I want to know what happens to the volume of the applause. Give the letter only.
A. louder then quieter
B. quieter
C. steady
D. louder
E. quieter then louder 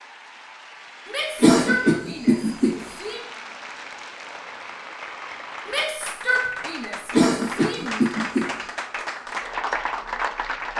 D.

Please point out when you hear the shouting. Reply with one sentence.
You can hear the shouting from 1.1 to 3.2 s and from 5.7 to 8.0 s.